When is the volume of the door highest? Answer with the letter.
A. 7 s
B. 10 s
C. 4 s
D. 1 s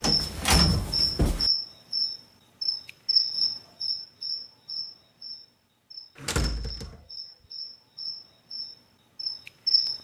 D.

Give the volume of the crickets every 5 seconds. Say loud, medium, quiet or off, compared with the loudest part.
loud, medium.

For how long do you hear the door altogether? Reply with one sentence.
You can hear the door for 2 seconds altogether.